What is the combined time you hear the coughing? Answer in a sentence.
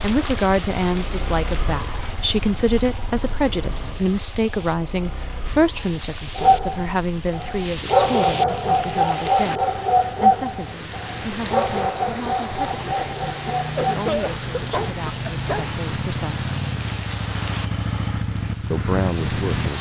You can hear the coughing for 2 seconds altogether.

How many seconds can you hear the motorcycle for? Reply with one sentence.
You can hear the motorcycle for 20 seconds altogether.